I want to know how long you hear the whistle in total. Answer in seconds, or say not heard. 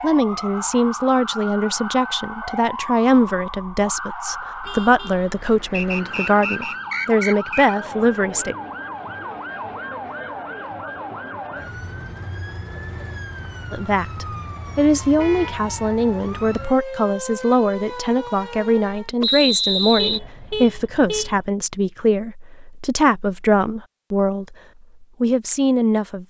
3 s.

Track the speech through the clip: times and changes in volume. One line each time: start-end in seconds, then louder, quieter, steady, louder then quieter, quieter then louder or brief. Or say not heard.
0.0-8.6 steady
13.7-26.2 steady.